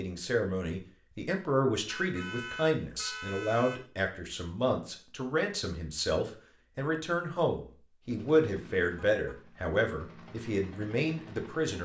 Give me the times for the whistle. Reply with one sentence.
You can't hear the whistle here.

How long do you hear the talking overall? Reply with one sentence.
You can hear the talking for 12 seconds altogether.